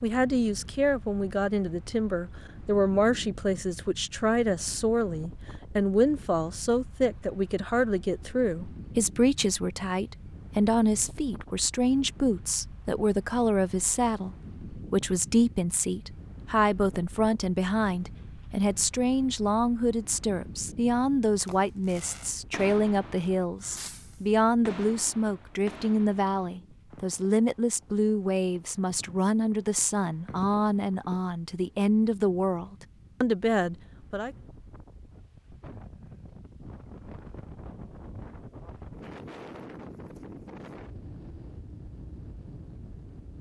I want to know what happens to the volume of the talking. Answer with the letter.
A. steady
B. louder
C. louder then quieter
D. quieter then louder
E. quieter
A.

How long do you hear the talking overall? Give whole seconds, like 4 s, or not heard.
34 s.